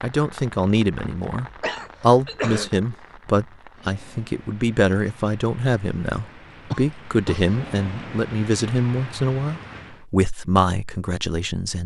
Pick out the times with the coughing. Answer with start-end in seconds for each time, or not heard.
1.6-2.7, 6.7-7.5.